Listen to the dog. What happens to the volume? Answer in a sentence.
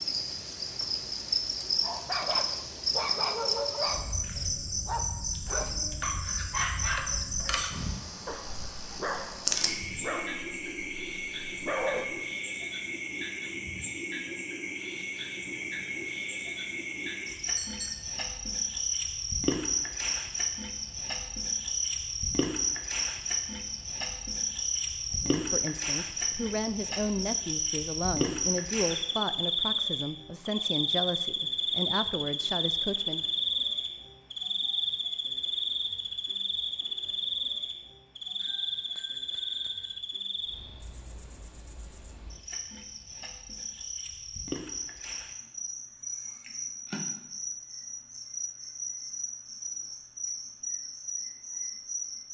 The loudness of the dog stays about the same.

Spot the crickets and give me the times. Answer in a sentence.
You can hear the crickets from 0.0 to 52.2 s.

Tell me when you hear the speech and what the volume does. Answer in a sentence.
You can hear the speech from 25.1 to 33.2 s, at a steady volume.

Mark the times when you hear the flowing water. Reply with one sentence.
The flowing water can't be heard in this clip.